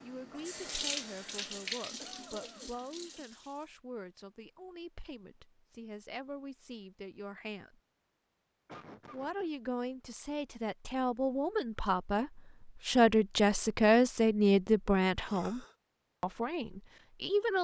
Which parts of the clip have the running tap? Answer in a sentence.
The running tap can be heard from 0.0 to 3.7 s.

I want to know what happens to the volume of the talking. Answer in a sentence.
The loudness of the talking goes up.